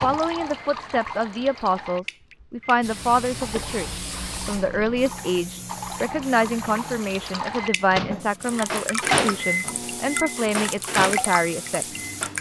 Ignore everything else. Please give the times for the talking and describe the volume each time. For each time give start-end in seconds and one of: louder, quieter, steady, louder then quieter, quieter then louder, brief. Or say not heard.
0.0-12.1 steady.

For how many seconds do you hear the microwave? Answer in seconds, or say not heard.
12 s.